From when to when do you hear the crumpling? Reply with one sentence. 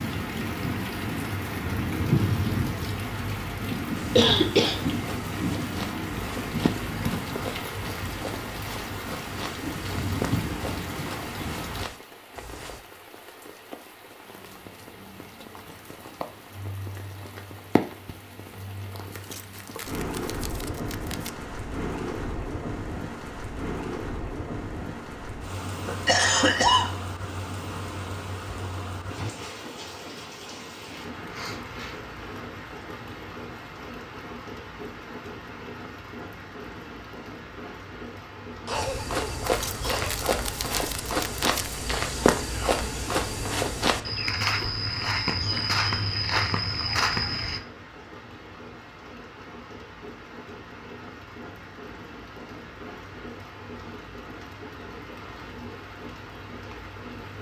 You can hear the crumpling from 19.1 to 21.3 s and from 39.4 to 41.8 s.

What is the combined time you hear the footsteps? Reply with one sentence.
You can hear the footsteps for 18 seconds altogether.